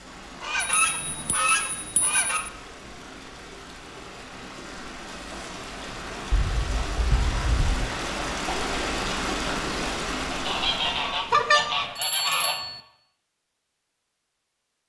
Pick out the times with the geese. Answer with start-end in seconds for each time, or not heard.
0.4-2.4, 6.3-7.9, 10.3-12.6.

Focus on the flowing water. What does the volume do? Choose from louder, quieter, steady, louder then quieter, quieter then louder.
louder.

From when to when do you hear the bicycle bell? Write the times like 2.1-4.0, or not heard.
0.6-2.5, 11.3-12.8.